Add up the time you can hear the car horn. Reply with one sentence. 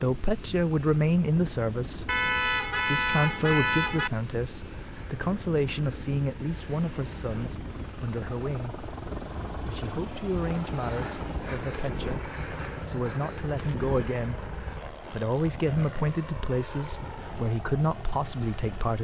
The car horn can be heard for 2 seconds in total.